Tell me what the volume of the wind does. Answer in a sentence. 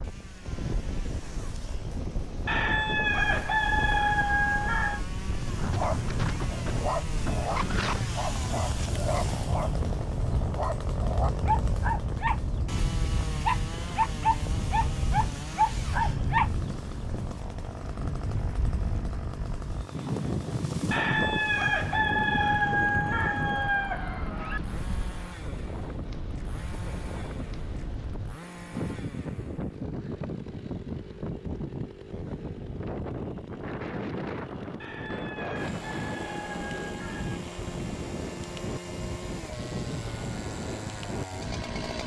The volume of the wind stays about the same.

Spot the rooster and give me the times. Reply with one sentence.
The rooster can be heard from 2.5 to 5.0 s, from 20.9 to 24.6 s and from 34.8 to 37.4 s.